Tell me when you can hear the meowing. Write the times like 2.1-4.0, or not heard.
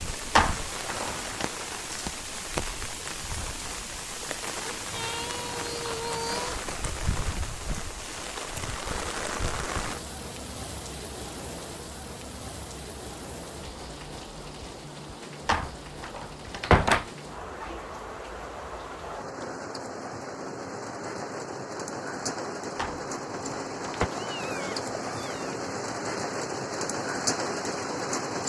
4.7-6.6, 23.9-25.6.